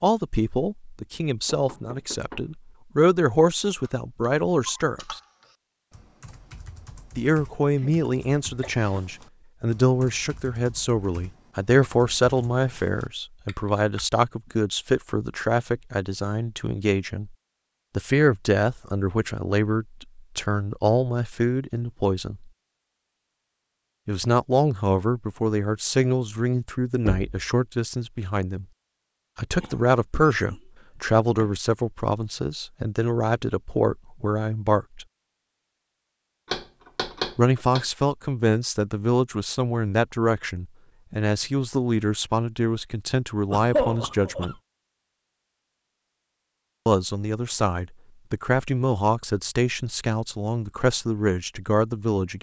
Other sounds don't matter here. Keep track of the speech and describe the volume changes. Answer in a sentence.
The loudness of the speech stays about the same.